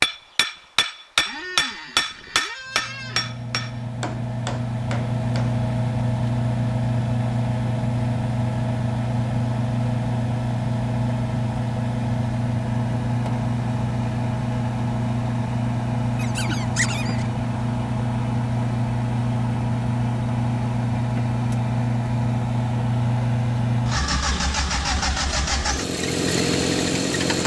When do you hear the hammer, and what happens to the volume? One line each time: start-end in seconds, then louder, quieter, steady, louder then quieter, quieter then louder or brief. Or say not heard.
0.0-5.6 quieter.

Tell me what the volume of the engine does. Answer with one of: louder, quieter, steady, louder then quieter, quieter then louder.
steady.